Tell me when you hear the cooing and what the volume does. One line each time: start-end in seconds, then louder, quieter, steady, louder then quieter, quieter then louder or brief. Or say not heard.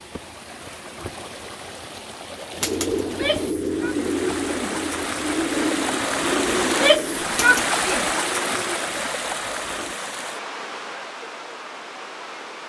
2.5-10.0 quieter.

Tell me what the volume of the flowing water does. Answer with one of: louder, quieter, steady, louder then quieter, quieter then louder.
louder then quieter.